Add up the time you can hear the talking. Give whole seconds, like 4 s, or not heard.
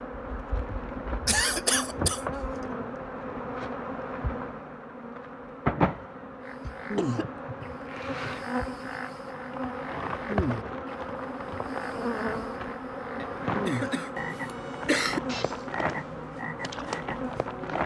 not heard.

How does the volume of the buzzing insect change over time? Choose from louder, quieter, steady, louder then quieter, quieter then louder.
steady.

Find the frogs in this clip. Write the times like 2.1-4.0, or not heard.
6.4-17.8.